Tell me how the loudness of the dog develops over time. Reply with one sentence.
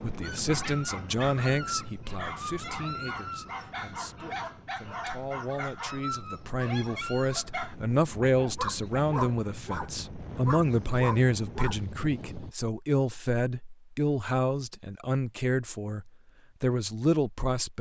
The loudness of the dog stays about the same.